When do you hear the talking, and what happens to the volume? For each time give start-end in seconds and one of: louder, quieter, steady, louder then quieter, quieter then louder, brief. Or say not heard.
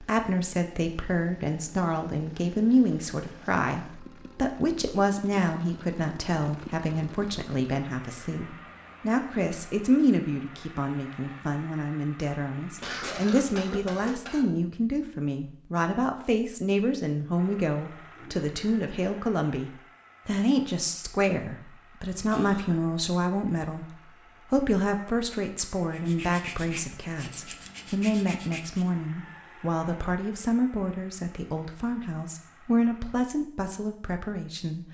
0.0-34.8 steady.